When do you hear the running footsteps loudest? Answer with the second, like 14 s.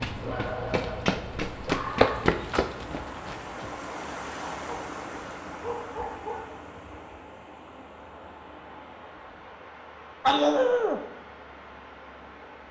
2 s.